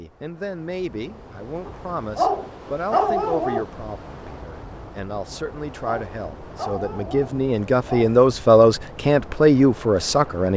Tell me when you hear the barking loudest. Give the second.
3 s.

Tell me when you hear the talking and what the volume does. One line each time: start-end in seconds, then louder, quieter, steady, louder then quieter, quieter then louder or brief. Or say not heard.
0.0-10.5 louder.